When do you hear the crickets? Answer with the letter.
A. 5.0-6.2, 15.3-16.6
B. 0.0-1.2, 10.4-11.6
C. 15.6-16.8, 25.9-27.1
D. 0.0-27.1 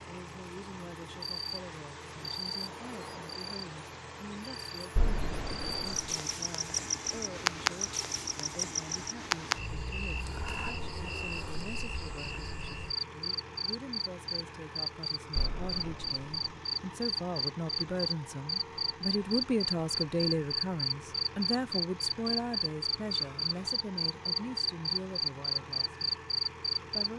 D.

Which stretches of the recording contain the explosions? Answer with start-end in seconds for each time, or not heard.
5.0-6.2, 15.3-16.6.